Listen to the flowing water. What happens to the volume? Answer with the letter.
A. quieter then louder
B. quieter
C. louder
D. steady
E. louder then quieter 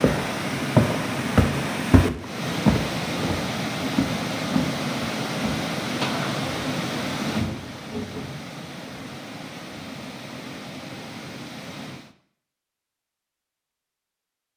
B.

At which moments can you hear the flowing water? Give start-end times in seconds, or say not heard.
0.0-12.2.